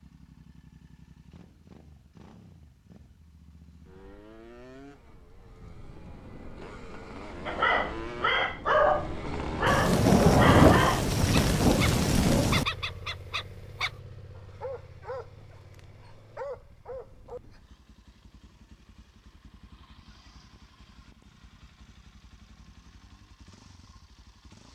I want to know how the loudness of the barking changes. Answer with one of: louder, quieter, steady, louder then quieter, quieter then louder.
quieter.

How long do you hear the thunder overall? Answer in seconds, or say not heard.
3 s.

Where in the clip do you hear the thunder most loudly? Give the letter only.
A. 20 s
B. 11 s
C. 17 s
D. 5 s
B.